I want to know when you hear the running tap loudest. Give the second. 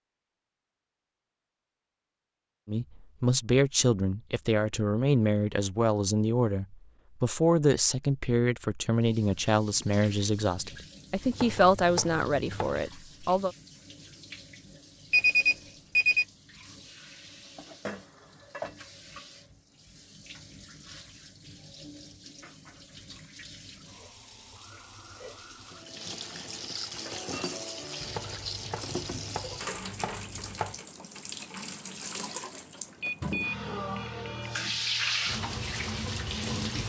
35 s.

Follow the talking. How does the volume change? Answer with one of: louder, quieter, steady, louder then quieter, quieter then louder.
steady.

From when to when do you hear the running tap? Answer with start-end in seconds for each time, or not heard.
8.9-36.8.